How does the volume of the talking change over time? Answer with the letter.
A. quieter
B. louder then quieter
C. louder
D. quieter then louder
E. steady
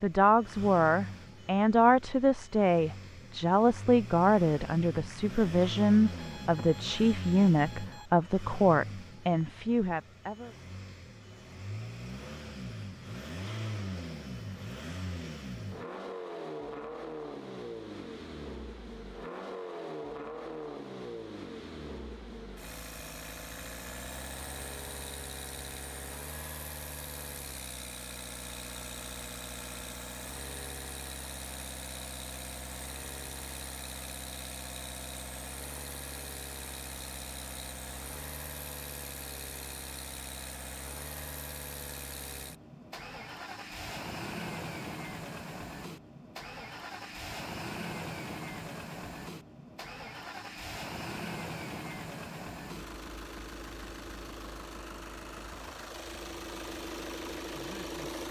E.